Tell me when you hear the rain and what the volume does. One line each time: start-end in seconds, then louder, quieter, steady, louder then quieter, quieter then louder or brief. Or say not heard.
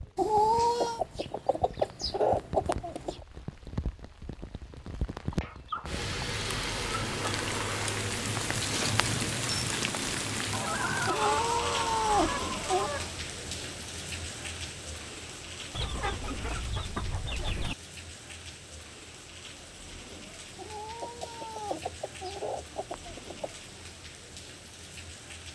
0.0-25.5 louder then quieter.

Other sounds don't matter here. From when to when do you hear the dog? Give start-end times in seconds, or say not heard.
not heard.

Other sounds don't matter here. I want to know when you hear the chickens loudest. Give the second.
2 s.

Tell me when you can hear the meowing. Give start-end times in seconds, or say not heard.
0.1-1.0, 11.1-12.9, 20.6-22.4.